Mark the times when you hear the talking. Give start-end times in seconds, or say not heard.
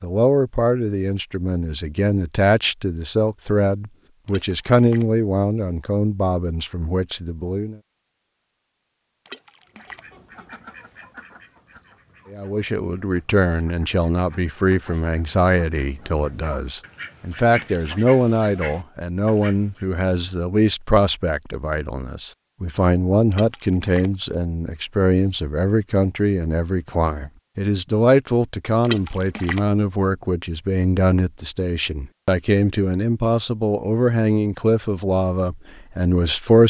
0.0-7.8, 12.3-36.6.